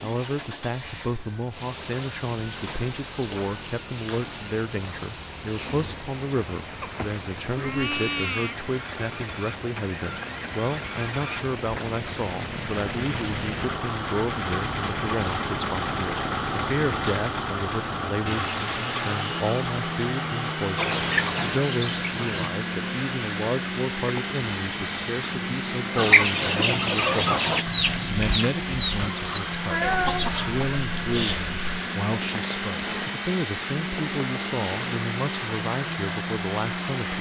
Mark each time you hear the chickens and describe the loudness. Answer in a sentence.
You can hear the chickens briefly from 20.8 to 22.5 s; and from 25.9 to 31.6 s, getting quieter.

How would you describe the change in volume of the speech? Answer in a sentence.
The volume of the speech stays about the same.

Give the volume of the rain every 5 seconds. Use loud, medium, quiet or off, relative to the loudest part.
medium, medium, loud, loud, medium, medium, medium, medium.